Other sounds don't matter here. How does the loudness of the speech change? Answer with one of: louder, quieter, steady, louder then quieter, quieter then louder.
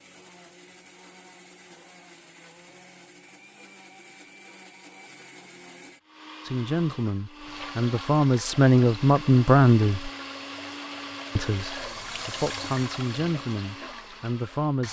louder then quieter.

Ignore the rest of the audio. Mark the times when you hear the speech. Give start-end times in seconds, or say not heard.
6.5-10.1, 11.3-14.8.